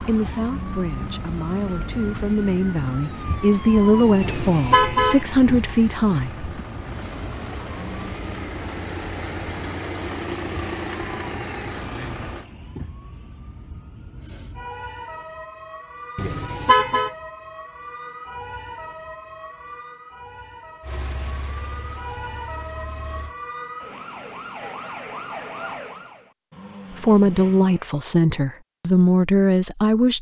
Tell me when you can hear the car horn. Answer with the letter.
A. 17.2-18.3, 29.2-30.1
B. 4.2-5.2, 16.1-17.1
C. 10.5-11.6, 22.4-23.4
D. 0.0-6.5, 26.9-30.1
B.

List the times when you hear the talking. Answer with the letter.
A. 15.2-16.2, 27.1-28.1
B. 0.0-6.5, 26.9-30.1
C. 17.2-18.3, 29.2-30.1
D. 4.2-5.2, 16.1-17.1
B.